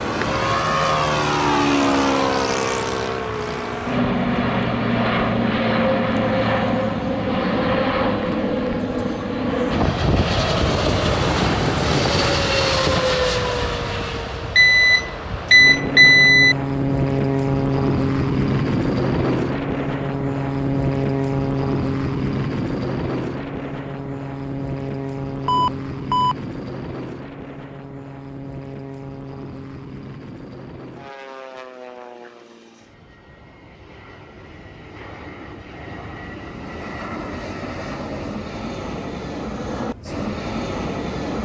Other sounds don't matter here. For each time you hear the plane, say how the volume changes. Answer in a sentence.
You can hear the plane from 0.0 to 41.4 s, getting quieter.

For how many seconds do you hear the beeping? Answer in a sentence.
You can hear the beeping for 3 seconds altogether.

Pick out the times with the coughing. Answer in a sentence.
You can't hear the coughing here.